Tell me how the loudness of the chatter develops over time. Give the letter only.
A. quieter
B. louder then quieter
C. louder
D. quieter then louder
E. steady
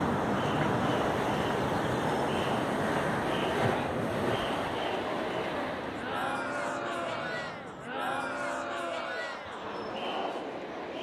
E.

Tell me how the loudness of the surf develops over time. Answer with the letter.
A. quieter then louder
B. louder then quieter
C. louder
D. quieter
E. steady
D.